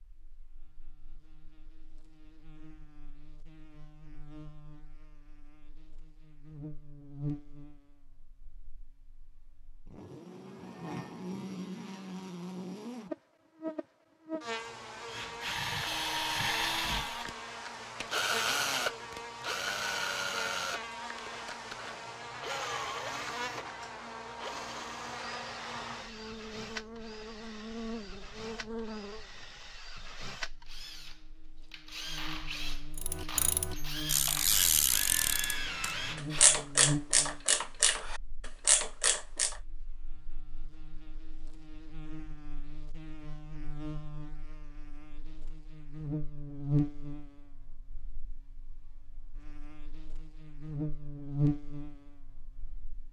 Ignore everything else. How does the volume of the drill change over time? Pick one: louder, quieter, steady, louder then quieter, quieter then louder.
quieter then louder.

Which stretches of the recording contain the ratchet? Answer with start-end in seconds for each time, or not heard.
33.0-39.6.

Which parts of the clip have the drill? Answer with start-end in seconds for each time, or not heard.
15.1-36.6.